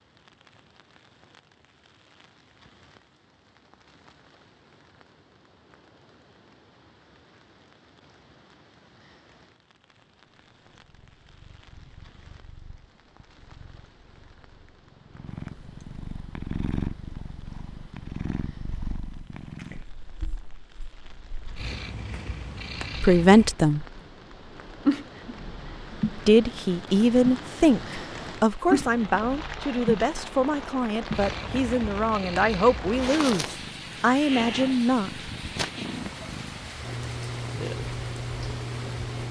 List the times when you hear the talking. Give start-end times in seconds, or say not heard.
23.0-23.9, 26.1-35.3.